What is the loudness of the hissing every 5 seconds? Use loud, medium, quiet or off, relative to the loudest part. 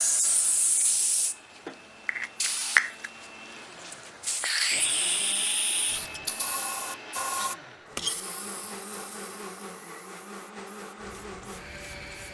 loud, medium, quiet.